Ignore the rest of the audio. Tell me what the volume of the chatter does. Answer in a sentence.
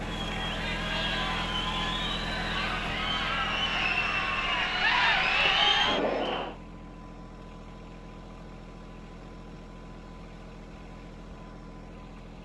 The loudness of the chatter goes up.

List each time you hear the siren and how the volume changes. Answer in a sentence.
You can't hear the siren here.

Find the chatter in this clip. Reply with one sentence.
The chatter can be heard from 0.0 to 6.5 s.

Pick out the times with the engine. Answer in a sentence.
The engine can be heard from 0.0 to 12.4 s.